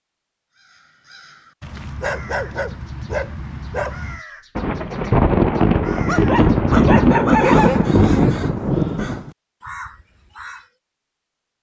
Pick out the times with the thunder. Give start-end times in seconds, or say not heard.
4.5-9.3.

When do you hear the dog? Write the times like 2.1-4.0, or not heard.
1.6-4.2, 6.0-7.9.